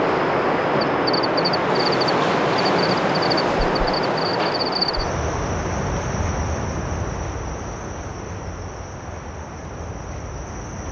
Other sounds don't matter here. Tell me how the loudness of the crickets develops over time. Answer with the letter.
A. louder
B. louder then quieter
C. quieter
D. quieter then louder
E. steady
C.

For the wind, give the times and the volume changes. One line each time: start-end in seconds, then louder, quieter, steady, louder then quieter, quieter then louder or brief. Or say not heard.
0.0-10.8 quieter.